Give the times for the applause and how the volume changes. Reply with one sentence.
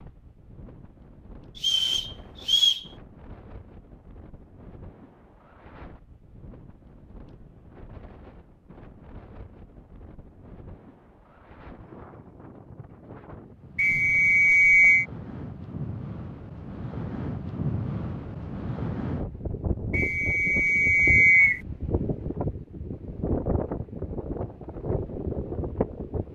You can't hear the applause here.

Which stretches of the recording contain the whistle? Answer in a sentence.
You can hear the whistle from 1.6 to 2.9 s, from 13.8 to 15.1 s and from 19.9 to 21.6 s.